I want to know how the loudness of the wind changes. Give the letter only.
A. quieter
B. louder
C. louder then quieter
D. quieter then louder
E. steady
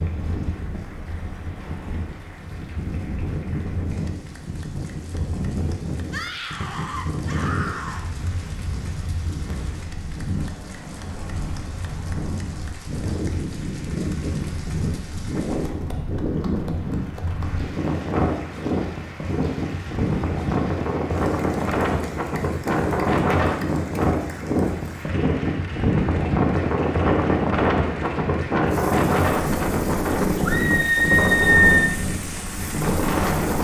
B.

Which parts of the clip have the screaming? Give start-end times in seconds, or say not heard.
6.1-8.1, 30.4-31.9.